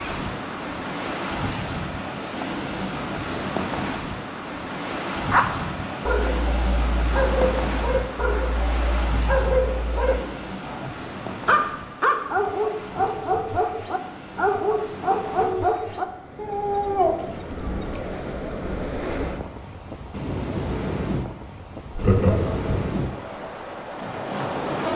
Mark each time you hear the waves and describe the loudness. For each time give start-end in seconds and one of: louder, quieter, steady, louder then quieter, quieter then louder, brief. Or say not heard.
0.0-24.9 quieter then louder.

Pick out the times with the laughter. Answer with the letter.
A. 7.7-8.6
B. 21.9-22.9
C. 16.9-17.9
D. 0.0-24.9
B.